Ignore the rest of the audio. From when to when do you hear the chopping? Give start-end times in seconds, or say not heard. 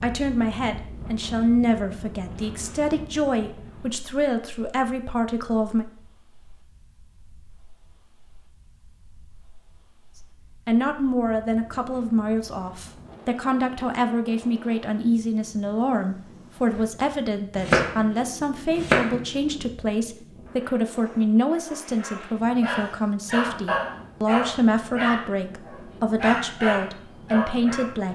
17.6-19.6.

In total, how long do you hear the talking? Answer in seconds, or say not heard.
23 s.